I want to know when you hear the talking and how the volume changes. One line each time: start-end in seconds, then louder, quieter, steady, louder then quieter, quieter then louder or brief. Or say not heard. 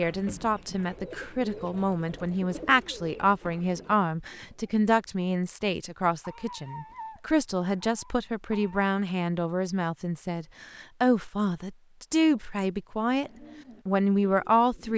0.0-14.9 steady.